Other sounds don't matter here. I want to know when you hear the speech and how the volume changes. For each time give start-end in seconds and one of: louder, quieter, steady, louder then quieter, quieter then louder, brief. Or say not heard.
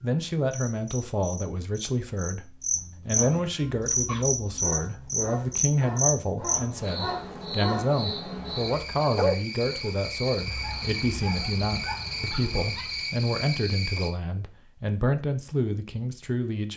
0.0-16.7 steady.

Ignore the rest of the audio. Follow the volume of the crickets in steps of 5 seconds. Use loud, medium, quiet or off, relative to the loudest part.
loud, loud, loud, off.